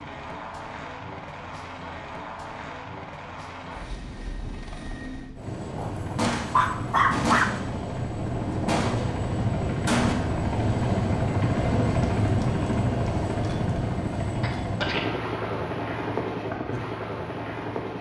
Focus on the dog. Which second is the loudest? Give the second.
7 s.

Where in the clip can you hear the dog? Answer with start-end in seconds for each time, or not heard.
5.8-7.5.